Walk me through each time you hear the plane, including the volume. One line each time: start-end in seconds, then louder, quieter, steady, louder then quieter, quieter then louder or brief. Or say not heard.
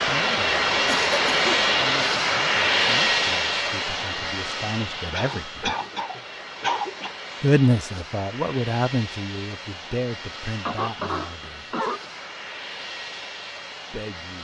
0.0-14.3 quieter.